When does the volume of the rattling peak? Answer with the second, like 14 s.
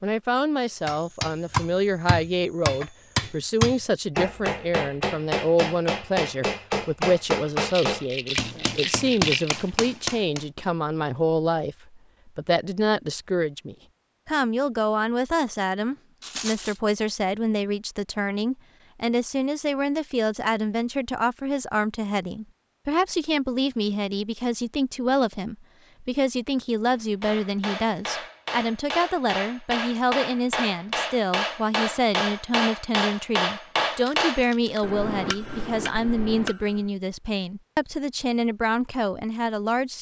9 s.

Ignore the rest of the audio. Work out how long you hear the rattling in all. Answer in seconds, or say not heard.
4 s.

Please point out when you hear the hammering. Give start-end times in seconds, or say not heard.
0.8-10.4, 27.2-36.9.